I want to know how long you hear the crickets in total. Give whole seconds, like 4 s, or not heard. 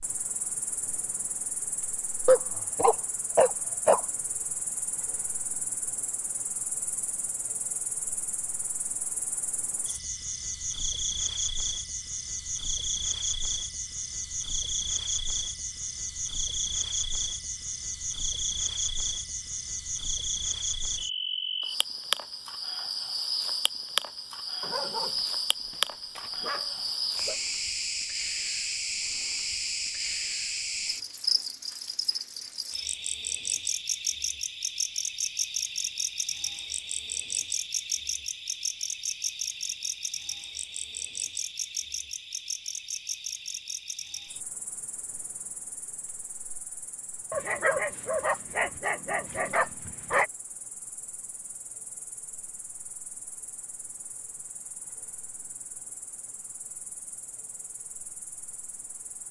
59 s.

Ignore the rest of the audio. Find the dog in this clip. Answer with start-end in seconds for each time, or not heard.
2.2-4.0, 24.6-27.4, 47.3-50.3.